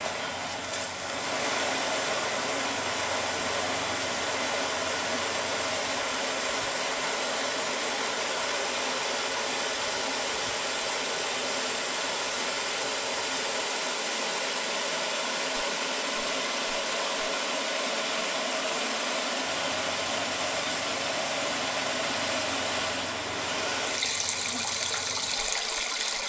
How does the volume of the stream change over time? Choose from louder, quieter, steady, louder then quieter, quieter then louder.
steady.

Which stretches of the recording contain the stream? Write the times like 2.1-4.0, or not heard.
0.0-26.2.